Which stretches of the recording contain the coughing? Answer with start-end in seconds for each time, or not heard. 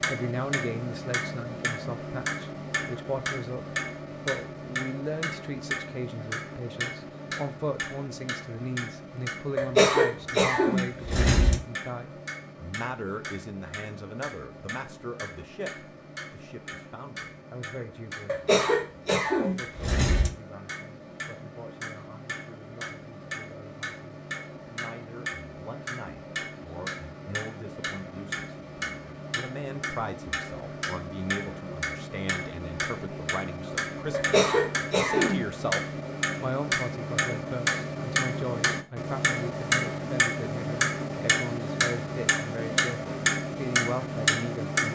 9.6-11.6, 18.2-20.3, 34.1-35.5.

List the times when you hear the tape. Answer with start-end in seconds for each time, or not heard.
not heard.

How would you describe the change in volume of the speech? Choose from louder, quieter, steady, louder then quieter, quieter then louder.
quieter then louder.